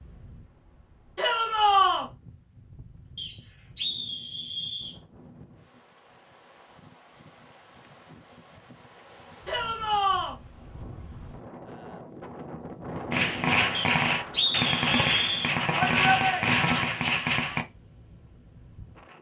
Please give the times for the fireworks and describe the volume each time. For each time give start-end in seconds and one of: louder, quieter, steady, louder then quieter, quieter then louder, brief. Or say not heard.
13.1-17.6 steady.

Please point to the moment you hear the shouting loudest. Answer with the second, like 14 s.
2 s.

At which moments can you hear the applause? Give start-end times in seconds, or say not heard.
not heard.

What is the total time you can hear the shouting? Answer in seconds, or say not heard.
3 s.